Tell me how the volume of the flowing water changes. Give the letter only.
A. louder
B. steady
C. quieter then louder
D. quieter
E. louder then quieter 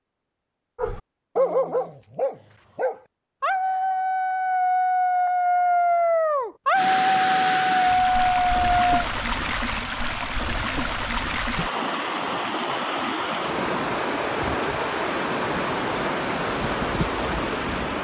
B.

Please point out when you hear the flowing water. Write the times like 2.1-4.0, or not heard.
6.7-18.0.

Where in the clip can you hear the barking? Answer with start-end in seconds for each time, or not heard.
0.8-9.0.